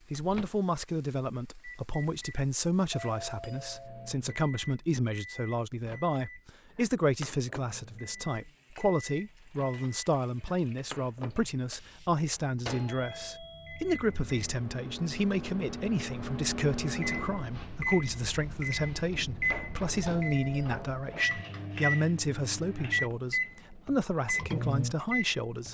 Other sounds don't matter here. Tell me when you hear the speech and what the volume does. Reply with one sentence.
The speech can be heard from 0.1 to 25.6 s, at a steady volume.